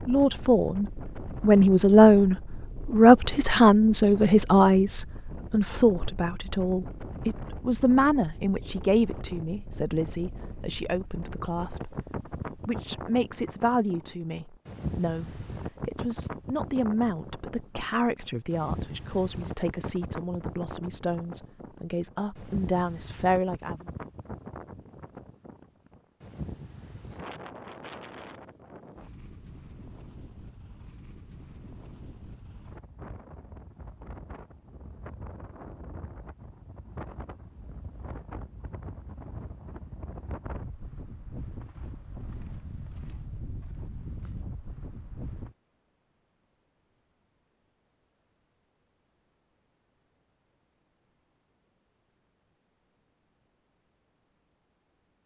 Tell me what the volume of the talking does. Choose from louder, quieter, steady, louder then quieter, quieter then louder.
quieter.